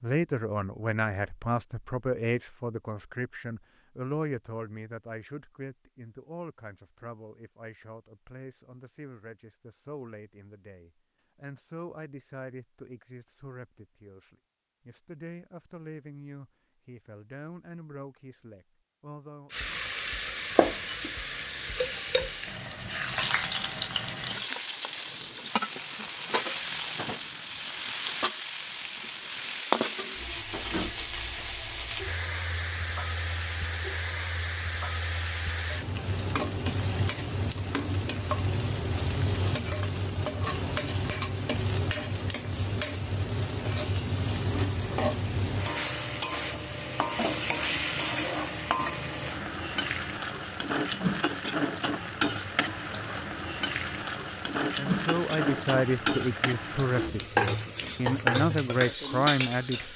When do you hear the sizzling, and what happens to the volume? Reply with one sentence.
You can hear the sizzling from 19.5 to 59.9 s, at a steady volume.